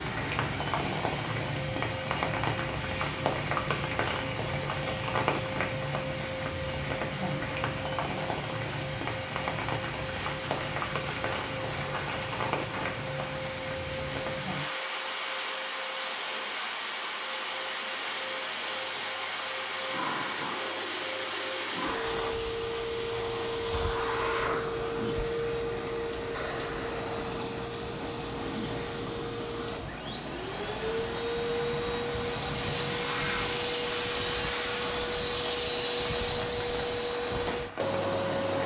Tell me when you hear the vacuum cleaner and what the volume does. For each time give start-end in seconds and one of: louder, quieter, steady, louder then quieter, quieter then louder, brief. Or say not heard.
0.0-38.6 louder.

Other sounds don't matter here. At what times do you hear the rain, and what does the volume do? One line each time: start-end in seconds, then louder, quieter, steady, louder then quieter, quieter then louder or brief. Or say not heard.
0.0-38.6 quieter.